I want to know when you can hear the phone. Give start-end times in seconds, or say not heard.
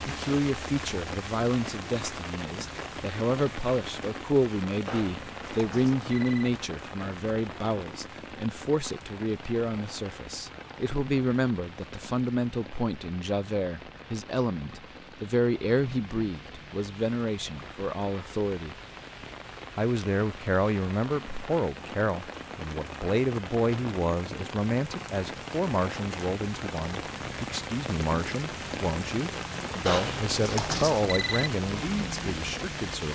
4.8-6.6, 29.9-31.6.